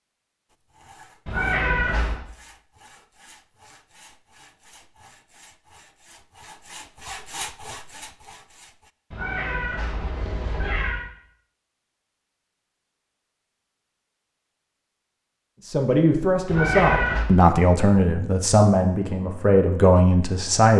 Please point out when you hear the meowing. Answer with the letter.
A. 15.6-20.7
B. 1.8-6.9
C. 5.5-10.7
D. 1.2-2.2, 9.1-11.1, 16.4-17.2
D.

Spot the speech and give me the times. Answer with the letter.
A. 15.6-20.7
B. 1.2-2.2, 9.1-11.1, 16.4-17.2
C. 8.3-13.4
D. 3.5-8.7
A.